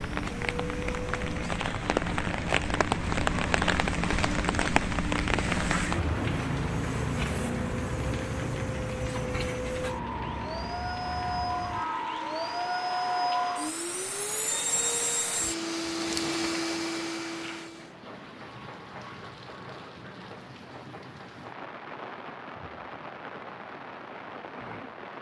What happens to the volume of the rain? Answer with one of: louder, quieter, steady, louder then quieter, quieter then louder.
quieter.